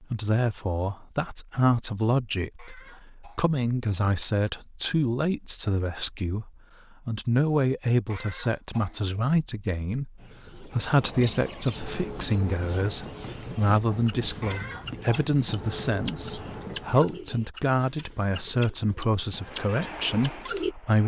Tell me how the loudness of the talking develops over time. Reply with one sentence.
The volume of the talking stays about the same.